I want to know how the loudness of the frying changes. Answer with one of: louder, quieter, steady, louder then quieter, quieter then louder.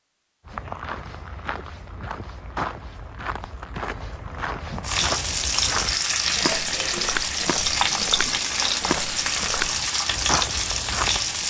steady.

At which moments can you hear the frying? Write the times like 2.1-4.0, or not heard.
4.8-11.4.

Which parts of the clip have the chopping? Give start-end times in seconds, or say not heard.
not heard.